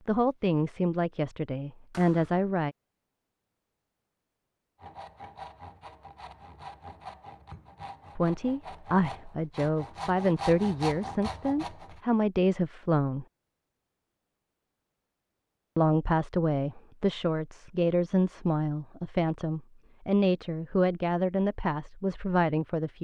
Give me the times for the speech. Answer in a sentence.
You can hear the speech from 0.1 to 2.8 s, from 8.2 to 13.2 s and from 15.8 to 22.9 s.